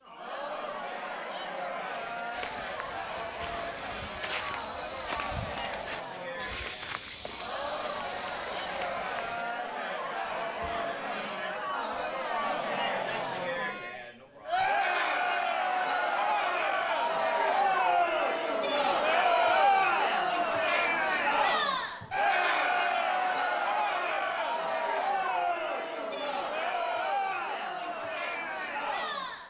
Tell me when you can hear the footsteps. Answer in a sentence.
The footsteps can be heard from 2.3 to 9.4 s.